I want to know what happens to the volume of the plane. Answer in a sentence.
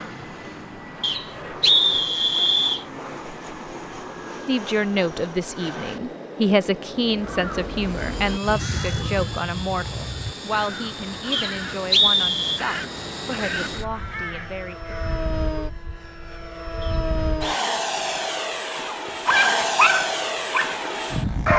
The loudness of the plane goes up.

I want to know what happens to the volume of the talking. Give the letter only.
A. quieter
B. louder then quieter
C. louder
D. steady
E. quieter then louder
A.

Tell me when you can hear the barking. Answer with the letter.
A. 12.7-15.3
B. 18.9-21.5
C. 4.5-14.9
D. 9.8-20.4
B.